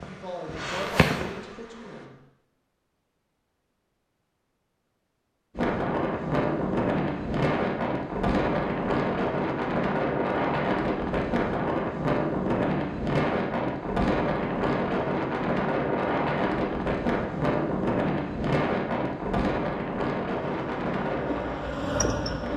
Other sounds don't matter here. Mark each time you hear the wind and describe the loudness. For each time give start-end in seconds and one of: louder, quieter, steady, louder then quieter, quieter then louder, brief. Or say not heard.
5.5-22.5 steady.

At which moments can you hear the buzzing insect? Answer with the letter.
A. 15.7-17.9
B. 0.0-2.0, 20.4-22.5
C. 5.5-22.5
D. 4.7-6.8
B.